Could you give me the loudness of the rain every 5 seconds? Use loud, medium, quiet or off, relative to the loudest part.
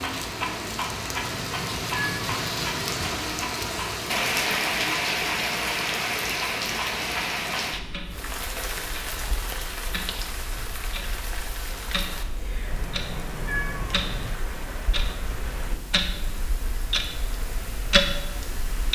loud, loud, medium, quiet.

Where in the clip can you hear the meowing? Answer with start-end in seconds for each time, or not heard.
1.3-3.1, 12.7-14.3.